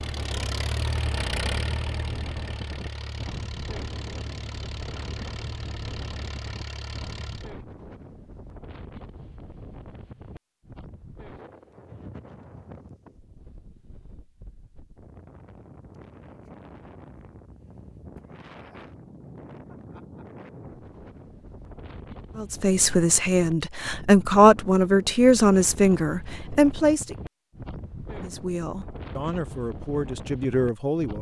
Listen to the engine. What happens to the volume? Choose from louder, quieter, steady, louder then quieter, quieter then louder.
quieter.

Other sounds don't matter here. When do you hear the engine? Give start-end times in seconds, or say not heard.
0.0-7.5.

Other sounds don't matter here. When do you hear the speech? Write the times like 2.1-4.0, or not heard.
22.4-27.1, 28.2-31.1.